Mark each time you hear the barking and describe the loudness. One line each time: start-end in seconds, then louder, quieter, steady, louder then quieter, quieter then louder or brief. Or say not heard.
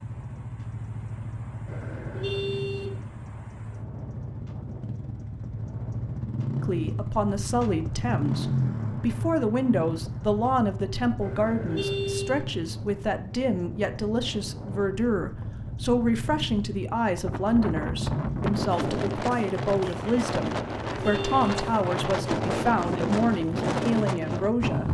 not heard.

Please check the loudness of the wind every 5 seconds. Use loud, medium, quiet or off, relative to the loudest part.
quiet, quiet, quiet, loud, loud.